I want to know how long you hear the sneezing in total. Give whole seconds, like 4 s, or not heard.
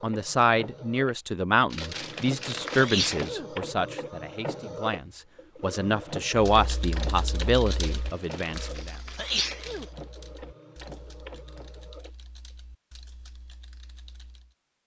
2 s.